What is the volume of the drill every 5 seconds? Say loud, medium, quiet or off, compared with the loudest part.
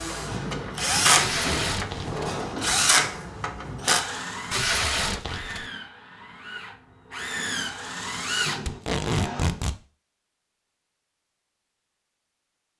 loud, medium, off.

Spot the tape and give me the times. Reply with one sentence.
You can hear the tape from 1.1 to 2.4 s, from 4.5 to 5.7 s and from 8.7 to 9.8 s.